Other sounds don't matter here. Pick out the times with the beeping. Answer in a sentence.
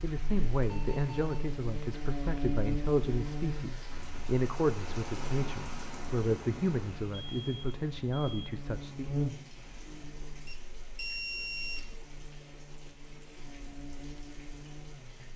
The beeping can be heard from 0.7 to 1.4 s, from 7.2 to 8.5 s and from 10.4 to 11.8 s.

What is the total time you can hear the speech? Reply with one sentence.
The speech can be heard for 9 seconds in total.